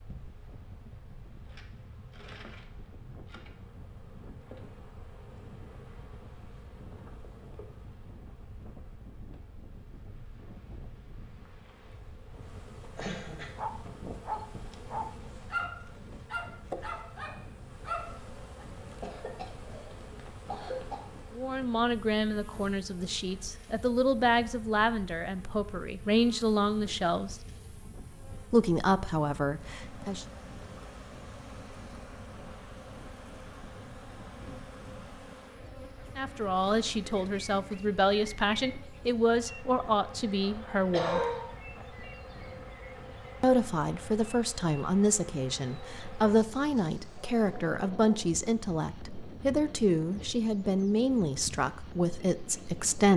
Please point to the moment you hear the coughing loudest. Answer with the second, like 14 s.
41 s.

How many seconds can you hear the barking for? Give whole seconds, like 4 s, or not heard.
5 s.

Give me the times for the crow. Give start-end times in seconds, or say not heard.
not heard.